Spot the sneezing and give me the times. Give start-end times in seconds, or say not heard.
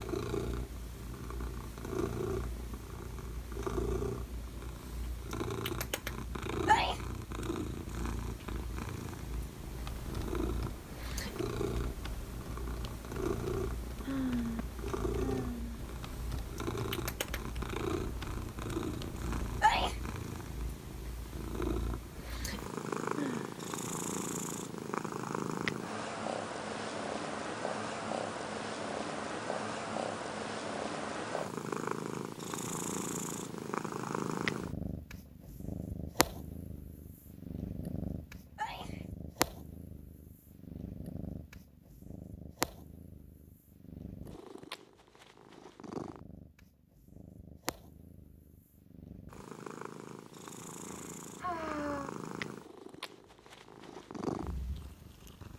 6.2-7.0, 19.4-19.9, 38.4-39.0.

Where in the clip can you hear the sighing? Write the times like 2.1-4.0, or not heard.
14.0-15.8, 23.1-23.7, 50.9-52.1.